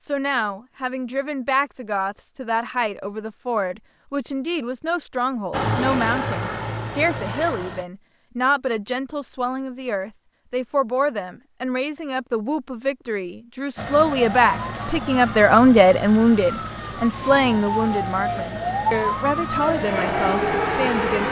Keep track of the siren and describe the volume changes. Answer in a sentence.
The loudness of the siren goes up.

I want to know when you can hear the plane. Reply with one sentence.
The plane can be heard from 5.5 to 7.8 s and from 13.8 to 21.2 s.